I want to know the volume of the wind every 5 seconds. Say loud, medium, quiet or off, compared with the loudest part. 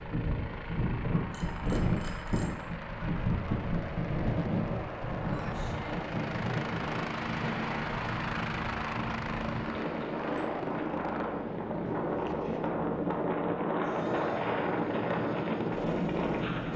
loud, medium, loud, loud.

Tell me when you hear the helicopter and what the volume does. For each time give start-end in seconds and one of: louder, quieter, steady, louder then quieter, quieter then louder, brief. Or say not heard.
0.0-16.7 louder then quieter.